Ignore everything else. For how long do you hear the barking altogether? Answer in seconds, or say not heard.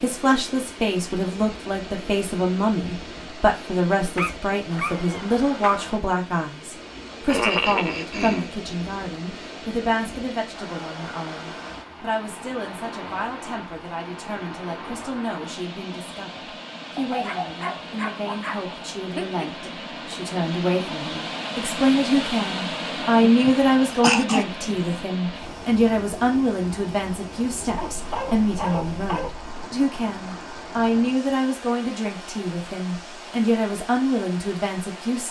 6 s.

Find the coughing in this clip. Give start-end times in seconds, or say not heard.
7.2-8.5, 23.2-25.0.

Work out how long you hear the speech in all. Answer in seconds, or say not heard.
35 s.